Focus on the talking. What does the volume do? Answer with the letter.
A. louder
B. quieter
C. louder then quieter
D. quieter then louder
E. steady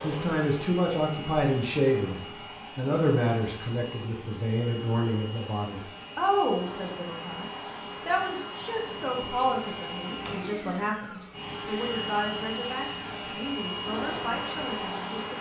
B.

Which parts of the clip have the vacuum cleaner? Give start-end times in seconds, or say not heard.
0.0-15.3.